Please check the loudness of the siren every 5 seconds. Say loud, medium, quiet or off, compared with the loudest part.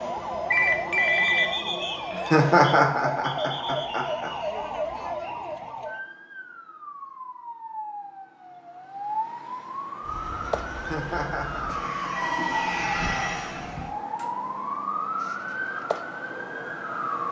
loud, medium, loud, loud.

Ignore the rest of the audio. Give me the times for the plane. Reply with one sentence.
You can hear the plane from 10.0 to 13.9 s.